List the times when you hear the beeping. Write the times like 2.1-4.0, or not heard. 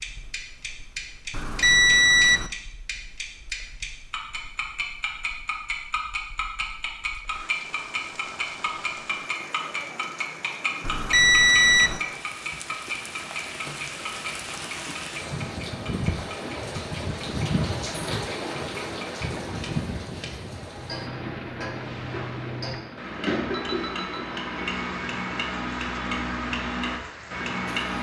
1.3-2.5, 10.8-12.0, 23.5-24.4.